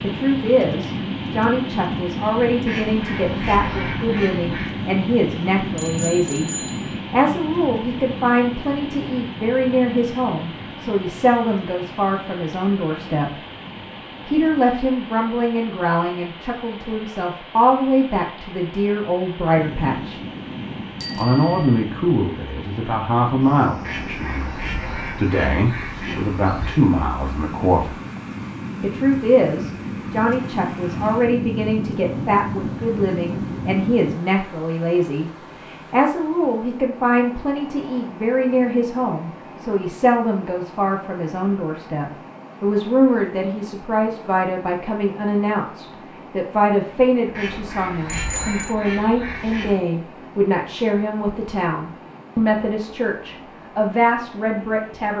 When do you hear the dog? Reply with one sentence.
The dog can't be heard in this clip.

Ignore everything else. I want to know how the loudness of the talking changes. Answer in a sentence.
The volume of the talking stays about the same.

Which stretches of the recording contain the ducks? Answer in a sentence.
You can hear the ducks from 2.6 to 4.8 s, from 23.8 to 26.8 s and from 47.3 to 49.8 s.